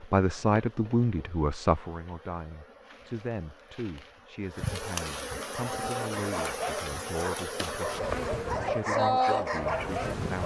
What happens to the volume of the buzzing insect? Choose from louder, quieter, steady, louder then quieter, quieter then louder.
louder.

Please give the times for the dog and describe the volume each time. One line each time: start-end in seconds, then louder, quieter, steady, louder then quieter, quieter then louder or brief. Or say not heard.
5.5-10.4 louder.